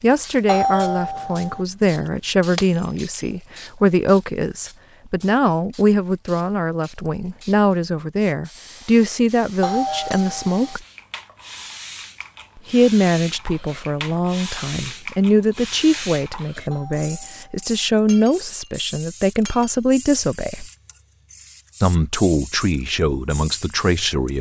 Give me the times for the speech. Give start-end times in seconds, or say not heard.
0.0-10.8, 12.7-20.6, 21.8-24.3.